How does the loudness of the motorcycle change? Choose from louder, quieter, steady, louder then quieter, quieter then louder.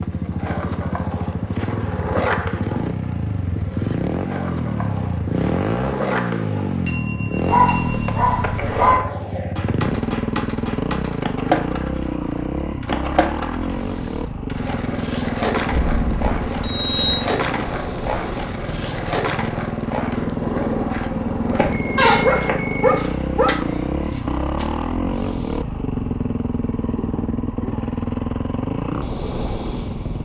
steady.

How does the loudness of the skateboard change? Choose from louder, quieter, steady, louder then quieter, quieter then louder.
steady.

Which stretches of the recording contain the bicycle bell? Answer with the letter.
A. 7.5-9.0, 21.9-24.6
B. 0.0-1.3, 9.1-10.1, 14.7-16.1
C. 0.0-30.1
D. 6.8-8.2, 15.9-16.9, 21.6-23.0
D.